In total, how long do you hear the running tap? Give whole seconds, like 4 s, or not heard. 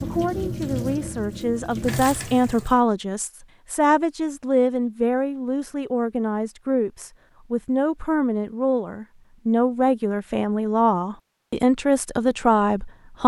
3 s.